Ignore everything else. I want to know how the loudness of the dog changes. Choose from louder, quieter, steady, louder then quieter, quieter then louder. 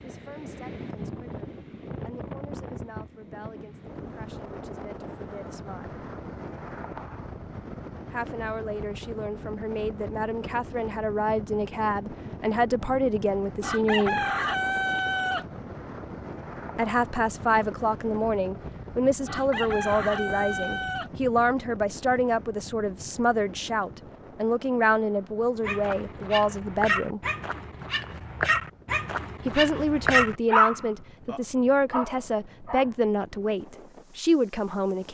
louder then quieter.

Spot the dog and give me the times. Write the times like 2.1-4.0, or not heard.
25.6-32.9.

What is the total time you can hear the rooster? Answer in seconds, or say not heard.
4 s.